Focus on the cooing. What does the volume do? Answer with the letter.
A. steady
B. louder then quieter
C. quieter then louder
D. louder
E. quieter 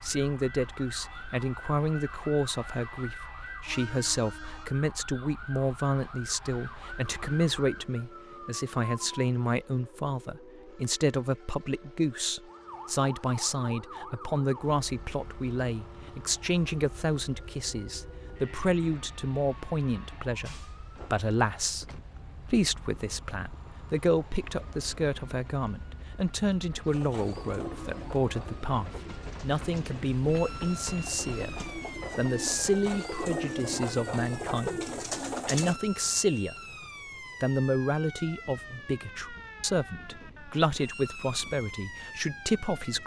C.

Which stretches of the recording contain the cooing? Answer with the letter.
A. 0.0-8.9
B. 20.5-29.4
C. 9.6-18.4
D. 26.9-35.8
D.